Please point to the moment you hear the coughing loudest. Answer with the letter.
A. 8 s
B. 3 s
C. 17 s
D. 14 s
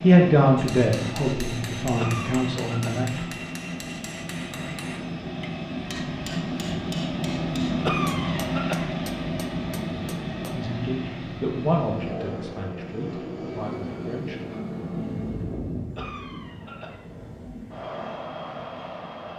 A.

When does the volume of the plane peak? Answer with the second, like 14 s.
8 s.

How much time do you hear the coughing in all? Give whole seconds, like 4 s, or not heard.
3 s.